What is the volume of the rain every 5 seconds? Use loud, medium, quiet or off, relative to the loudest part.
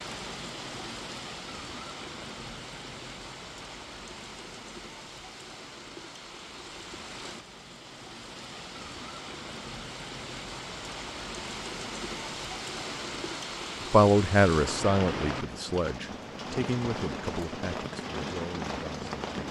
medium, medium, loud, loud.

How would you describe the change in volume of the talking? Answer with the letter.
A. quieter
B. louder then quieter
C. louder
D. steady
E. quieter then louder
A.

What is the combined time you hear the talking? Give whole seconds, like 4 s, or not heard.
5 s.